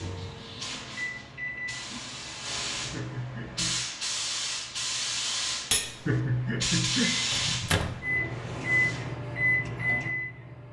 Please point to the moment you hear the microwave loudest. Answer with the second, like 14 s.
9 s.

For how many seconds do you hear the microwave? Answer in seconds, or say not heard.
6 s.